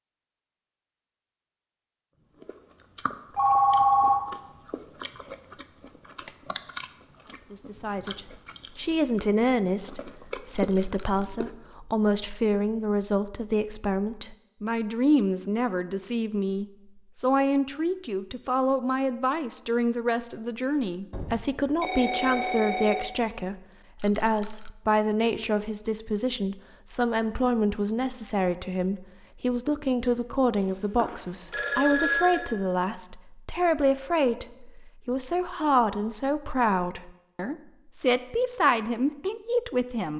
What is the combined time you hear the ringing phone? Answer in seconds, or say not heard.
4 s.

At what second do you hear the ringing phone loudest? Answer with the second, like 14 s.
4 s.